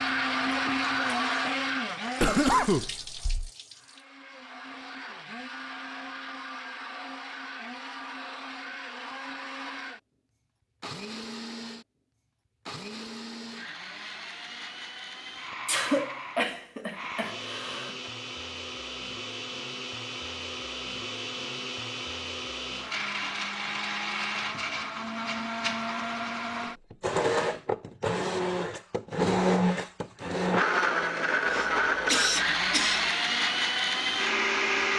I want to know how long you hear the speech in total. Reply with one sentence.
The speech can't be heard in this clip.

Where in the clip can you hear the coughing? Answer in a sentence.
The coughing can be heard from 2.2 to 3.5 s, from 15.7 to 17.9 s and from 31.4 to 33.1 s.